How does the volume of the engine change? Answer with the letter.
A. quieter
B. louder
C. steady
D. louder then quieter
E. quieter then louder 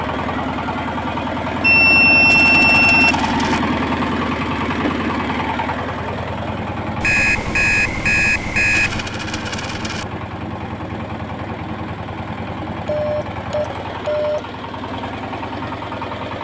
A.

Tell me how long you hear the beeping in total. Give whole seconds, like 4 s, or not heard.
5 s.